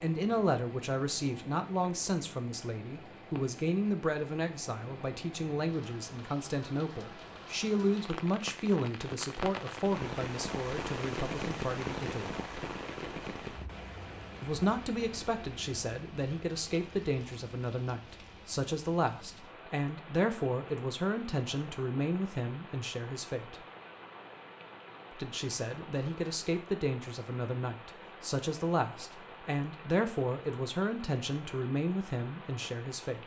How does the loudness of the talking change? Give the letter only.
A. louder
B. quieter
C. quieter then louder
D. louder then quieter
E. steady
E.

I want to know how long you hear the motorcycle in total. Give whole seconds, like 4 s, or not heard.
not heard.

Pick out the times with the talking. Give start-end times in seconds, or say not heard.
0.0-12.3, 14.4-23.6, 25.1-33.2.